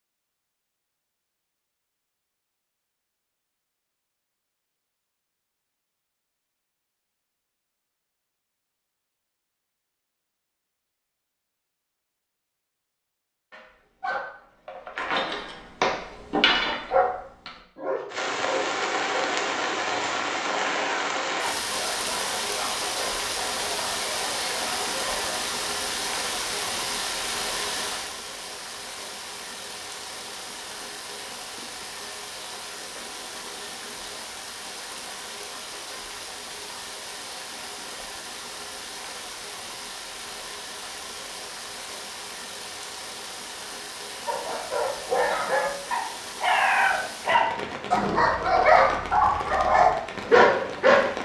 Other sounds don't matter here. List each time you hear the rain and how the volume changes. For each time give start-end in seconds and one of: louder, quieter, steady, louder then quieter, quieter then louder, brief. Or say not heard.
18.1-51.1 quieter.